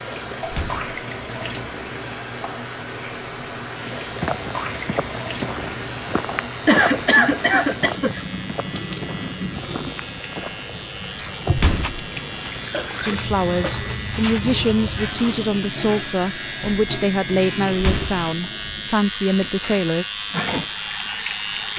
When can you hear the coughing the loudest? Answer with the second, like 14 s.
7 s.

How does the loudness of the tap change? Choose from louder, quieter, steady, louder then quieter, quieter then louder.
steady.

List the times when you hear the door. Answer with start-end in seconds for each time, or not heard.
0.5-0.9, 11.5-12.1, 17.7-18.2.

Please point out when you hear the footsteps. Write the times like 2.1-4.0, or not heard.
4.1-15.6.